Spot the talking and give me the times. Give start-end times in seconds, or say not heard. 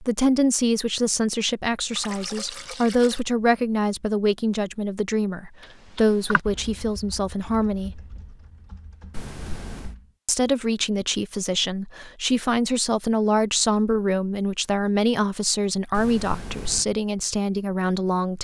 0.0-8.0, 10.2-18.3.